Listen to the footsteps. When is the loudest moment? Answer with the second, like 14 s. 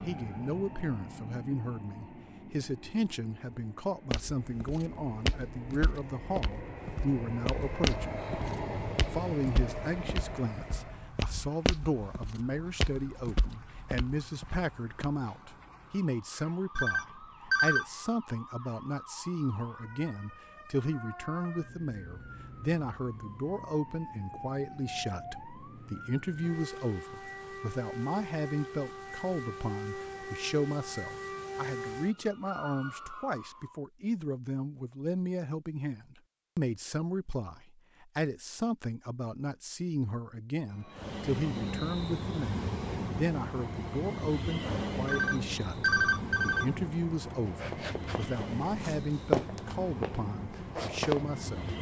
49 s.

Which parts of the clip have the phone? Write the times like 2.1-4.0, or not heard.
16.8-17.9, 45.0-46.7.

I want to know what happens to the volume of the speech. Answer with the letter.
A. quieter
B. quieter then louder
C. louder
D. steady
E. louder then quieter
D.